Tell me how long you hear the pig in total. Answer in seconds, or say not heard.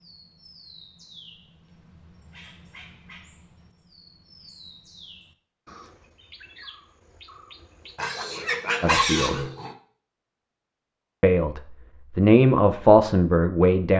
2 s.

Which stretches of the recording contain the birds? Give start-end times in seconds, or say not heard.
0.0-8.0.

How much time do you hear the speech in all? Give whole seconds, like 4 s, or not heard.
3 s.